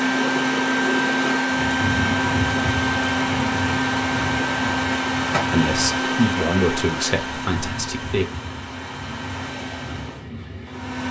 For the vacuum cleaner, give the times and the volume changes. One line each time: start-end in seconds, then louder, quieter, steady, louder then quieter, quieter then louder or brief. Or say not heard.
0.0-11.0 quieter.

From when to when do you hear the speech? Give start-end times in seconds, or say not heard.
5.5-8.2.